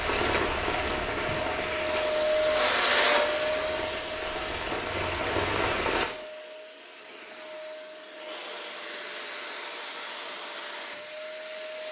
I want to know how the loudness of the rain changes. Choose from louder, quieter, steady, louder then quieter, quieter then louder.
quieter then louder.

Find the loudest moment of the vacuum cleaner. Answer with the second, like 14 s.
3 s.